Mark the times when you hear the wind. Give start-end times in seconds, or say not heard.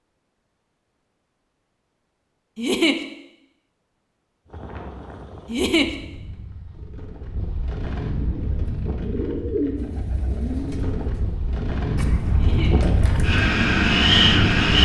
4.5-14.8.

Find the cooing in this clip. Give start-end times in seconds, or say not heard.
8.2-13.4.